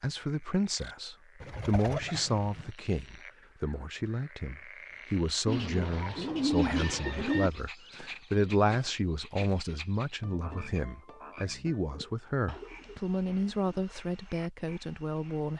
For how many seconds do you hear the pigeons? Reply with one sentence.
You can hear the pigeons for 5 seconds altogether.